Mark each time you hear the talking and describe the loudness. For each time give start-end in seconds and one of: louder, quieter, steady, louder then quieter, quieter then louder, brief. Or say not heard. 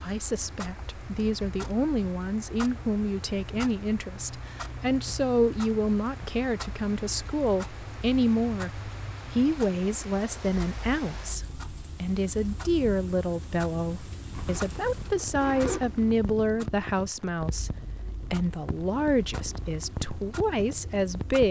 0.0-21.4 steady.